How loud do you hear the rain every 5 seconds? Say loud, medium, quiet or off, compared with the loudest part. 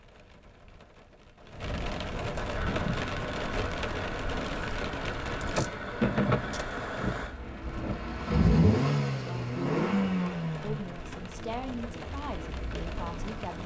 loud, loud, medium.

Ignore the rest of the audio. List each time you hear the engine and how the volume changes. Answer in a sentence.
The engine can be heard from 2.5 to 13.6 s, getting louder then quieter.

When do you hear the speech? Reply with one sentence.
You can hear the speech from 9.2 to 13.6 s.